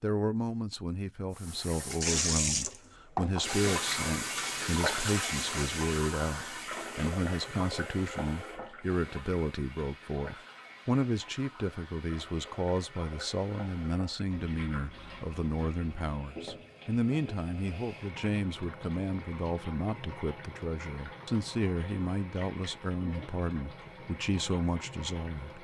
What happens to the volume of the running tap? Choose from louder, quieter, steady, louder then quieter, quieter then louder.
quieter.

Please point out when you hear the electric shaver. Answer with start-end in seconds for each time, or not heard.
not heard.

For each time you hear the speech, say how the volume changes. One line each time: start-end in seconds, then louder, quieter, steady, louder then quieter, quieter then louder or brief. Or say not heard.
0.0-25.5 steady.